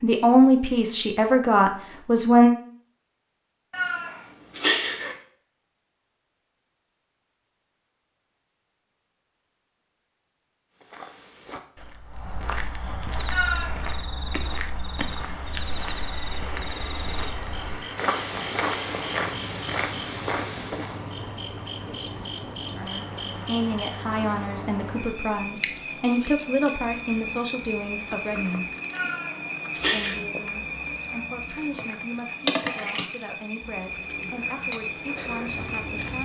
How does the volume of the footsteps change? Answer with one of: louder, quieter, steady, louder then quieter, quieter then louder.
louder.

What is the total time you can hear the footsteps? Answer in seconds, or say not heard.
10 s.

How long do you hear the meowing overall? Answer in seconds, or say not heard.
3 s.